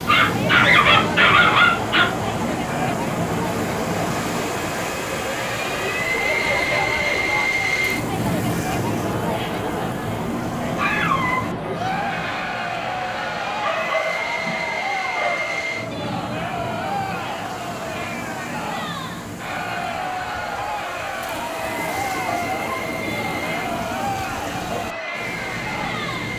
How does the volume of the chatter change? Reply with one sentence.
The loudness of the chatter stays about the same.